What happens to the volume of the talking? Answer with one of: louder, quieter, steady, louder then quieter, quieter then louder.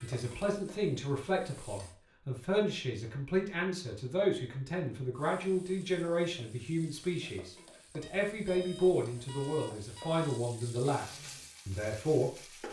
steady.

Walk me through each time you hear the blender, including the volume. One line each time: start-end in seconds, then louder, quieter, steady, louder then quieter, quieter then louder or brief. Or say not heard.
not heard.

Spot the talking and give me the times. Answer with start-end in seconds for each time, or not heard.
0.0-12.3.